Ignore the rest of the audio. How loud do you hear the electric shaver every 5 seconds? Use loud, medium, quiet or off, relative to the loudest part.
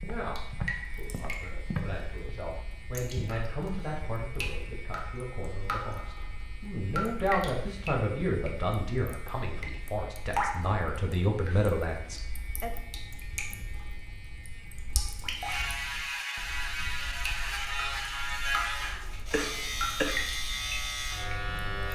quiet, quiet, quiet, loud, loud.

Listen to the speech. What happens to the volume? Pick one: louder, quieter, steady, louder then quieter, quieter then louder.
louder.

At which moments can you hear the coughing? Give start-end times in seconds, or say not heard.
19.3-20.2.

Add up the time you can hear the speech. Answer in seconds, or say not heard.
13 s.